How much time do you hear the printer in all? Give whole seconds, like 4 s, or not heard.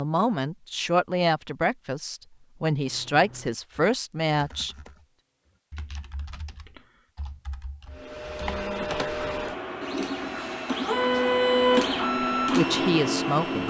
6 s.